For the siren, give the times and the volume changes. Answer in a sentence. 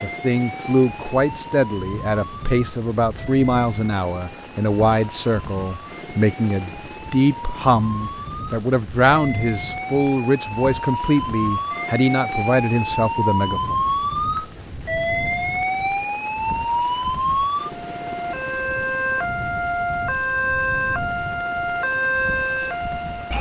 You can hear the siren from 0.0 to 23.3 s, getting louder.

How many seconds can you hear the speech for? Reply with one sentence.
You can hear the speech for 14 seconds altogether.